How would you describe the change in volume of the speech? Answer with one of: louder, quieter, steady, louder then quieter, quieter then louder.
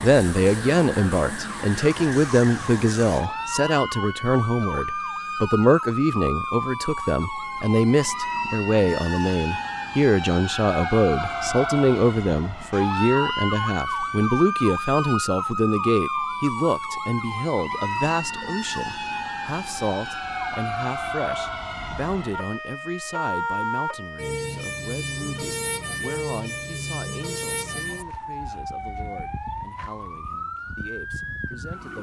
quieter.